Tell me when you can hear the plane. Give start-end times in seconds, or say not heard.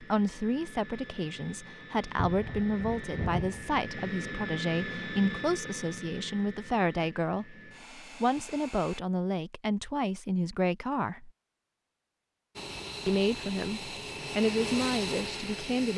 0.0-9.0, 12.6-15.9.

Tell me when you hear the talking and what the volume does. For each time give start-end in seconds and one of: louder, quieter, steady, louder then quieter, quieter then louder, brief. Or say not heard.
0.0-11.3 steady
13.1-15.9 brief.